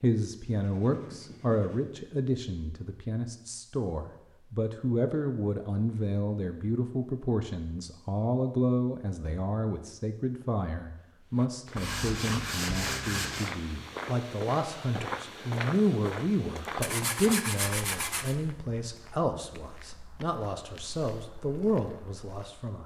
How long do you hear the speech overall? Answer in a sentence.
You can hear the speech for 23 seconds altogether.